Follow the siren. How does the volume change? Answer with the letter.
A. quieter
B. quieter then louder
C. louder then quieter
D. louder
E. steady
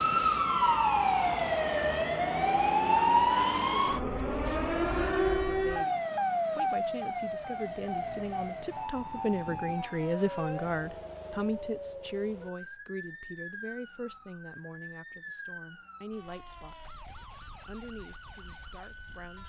A.